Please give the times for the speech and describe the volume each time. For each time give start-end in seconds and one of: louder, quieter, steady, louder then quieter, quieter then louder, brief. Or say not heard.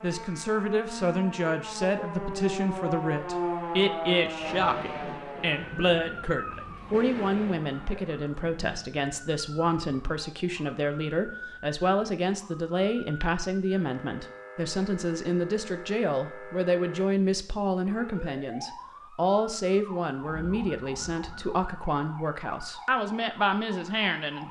0.0-24.4 steady.